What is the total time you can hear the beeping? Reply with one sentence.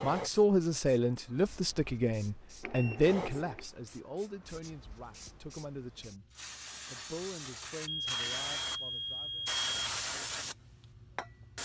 You can hear the beeping for 3 seconds altogether.